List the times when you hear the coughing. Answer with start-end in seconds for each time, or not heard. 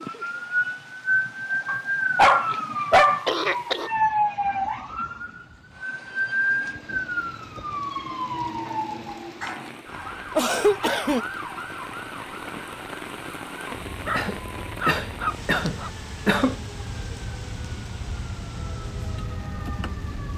3.2-3.9, 10.3-11.2, 14.1-16.6.